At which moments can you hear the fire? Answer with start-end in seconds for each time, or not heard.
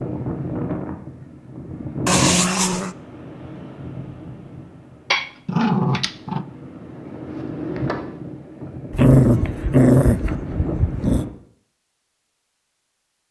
not heard.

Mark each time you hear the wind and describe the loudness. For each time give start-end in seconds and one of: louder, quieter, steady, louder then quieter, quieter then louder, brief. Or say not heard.
0.0-11.3 quieter then louder.